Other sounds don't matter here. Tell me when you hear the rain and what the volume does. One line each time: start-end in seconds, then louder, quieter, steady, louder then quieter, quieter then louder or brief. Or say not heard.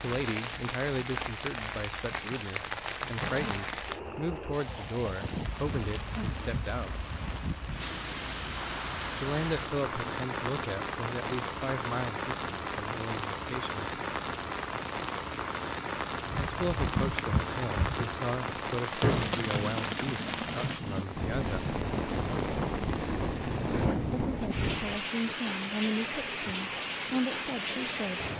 0.0-28.3 steady.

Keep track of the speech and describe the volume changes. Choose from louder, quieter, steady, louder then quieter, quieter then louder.
steady.